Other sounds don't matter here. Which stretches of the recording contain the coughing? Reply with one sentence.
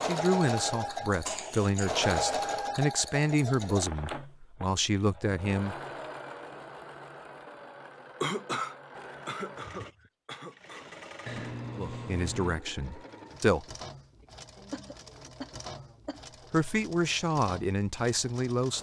The coughing can be heard from 1.2 to 1.9 s, from 8.2 to 10.9 s and from 14.2 to 16.2 s.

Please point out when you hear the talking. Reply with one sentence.
The talking can be heard from 0.0 to 5.8 s, from 11.7 to 13.7 s and from 16.5 to 18.7 s.